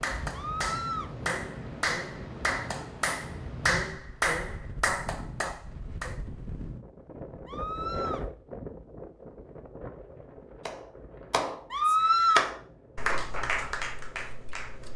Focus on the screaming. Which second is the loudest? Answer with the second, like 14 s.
12 s.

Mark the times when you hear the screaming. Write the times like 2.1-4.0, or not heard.
0.3-1.1, 7.5-8.2, 11.7-12.5.